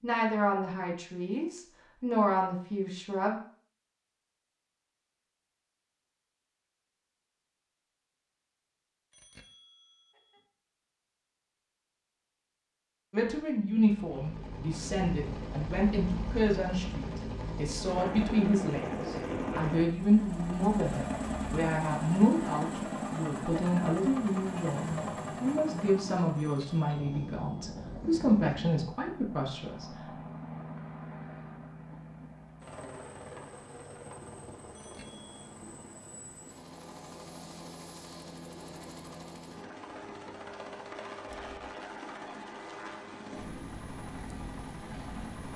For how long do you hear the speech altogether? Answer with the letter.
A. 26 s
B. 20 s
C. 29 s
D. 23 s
B.